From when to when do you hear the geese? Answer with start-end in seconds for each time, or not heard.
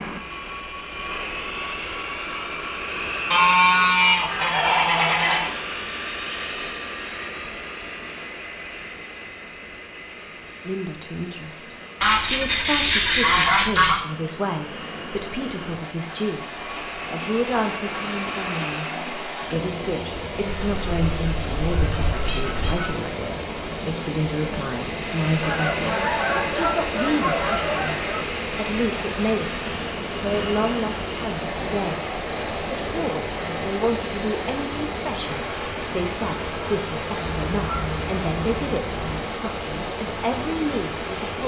3.3-5.5, 12.0-14.0, 20.4-22.9, 25.4-28.2, 37.2-39.2.